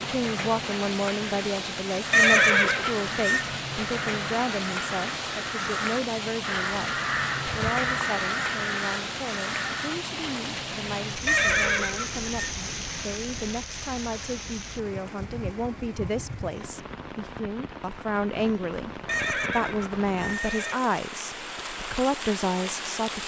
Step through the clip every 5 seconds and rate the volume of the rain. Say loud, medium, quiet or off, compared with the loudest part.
loud, loud, loud, medium, loud.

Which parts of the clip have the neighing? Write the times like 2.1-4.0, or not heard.
2.1-3.5, 11.2-12.2, 19.1-20.8.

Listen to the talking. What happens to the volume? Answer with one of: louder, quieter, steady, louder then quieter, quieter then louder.
quieter then louder.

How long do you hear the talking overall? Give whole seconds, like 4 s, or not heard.
23 s.